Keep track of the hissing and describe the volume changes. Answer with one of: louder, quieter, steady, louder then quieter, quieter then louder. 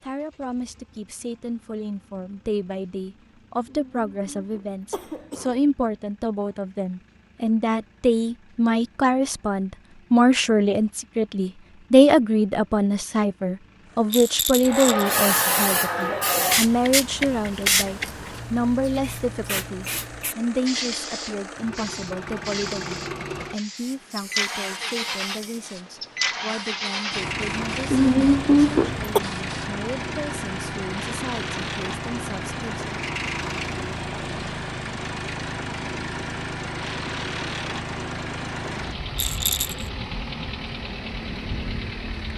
quieter.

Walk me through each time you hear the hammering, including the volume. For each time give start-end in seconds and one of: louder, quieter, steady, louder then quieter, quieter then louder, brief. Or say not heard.
not heard.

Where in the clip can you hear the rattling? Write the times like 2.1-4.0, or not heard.
14.1-15.2, 39.1-39.9.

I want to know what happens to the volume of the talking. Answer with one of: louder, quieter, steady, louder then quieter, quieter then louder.
louder then quieter.